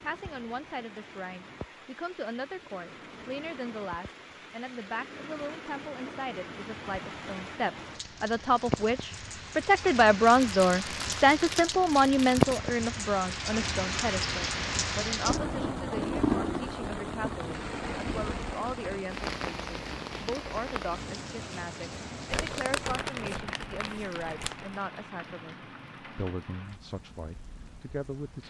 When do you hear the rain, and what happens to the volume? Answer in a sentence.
The rain can be heard from 0.0 to 28.4 s, getting louder then quieter.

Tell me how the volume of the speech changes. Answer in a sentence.
The volume of the speech goes up, then down.